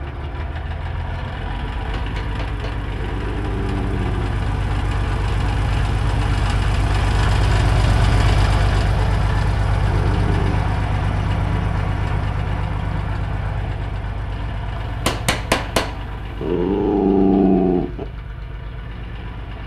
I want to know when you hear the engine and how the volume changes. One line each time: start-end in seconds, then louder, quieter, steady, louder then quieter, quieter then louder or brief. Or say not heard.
0.0-19.6 louder then quieter.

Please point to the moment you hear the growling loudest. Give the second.
17 s.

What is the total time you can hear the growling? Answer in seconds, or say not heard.
4 s.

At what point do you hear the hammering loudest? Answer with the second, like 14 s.
16 s.